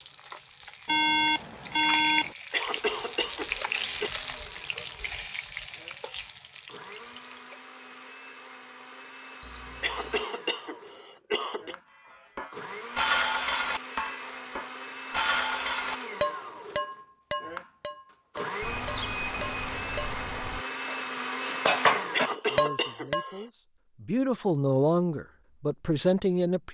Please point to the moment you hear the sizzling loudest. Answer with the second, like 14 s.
4 s.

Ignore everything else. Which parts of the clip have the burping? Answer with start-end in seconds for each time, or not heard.
not heard.